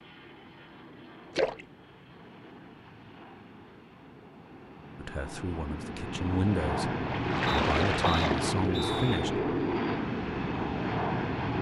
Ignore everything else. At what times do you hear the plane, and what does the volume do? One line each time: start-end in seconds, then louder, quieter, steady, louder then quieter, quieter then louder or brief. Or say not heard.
0.0-11.5 louder.